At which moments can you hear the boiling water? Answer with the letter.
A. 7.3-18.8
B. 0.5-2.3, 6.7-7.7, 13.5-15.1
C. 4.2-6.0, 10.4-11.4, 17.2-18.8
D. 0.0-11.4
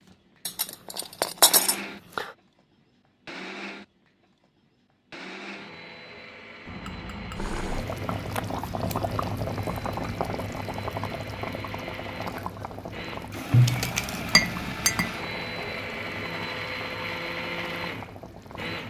A.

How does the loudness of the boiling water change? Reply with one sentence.
The loudness of the boiling water goes down.